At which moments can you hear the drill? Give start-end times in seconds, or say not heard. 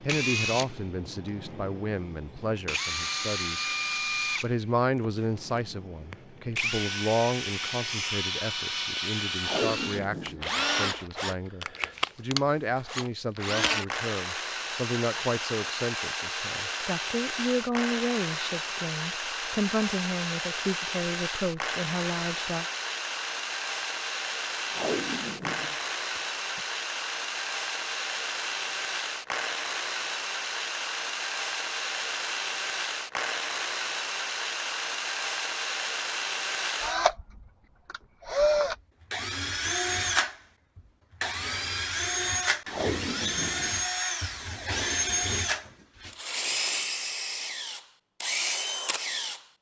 0.0-49.4.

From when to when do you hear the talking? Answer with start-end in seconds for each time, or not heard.
0.0-3.6, 4.4-22.6.